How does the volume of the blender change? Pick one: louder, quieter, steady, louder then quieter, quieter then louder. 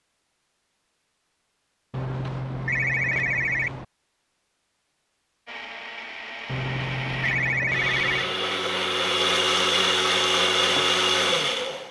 louder.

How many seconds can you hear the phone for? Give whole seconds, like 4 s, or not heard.
4 s.